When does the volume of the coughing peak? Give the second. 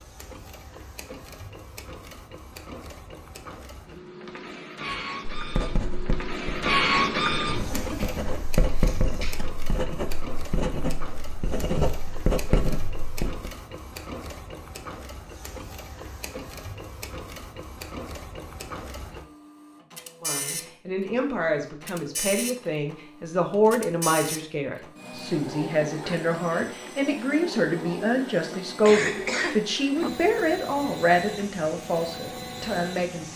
29 s.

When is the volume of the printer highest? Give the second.
7 s.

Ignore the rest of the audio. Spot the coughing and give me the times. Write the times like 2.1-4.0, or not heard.
7.7-9.3, 28.8-29.6.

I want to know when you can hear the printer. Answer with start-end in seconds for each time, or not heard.
0.0-33.3.